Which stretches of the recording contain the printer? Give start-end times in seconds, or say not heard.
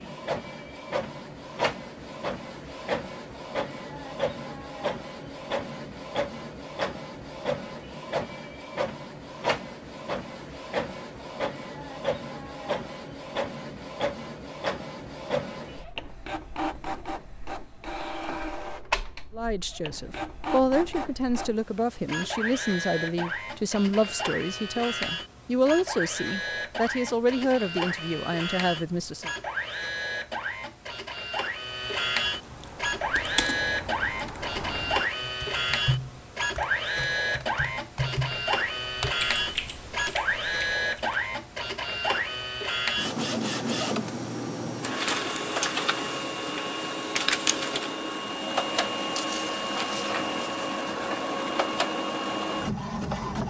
0.0-53.4.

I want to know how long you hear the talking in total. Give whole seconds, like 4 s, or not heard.
10 s.